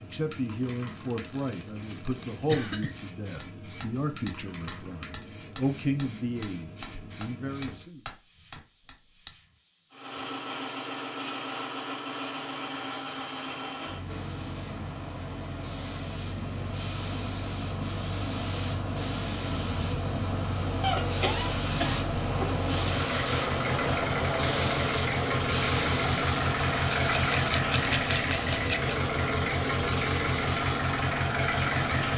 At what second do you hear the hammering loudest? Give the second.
9 s.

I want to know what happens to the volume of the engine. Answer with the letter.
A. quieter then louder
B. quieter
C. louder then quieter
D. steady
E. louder
E.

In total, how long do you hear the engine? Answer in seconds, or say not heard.
22 s.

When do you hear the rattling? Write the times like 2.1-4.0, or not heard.
0.3-2.5, 26.9-28.9.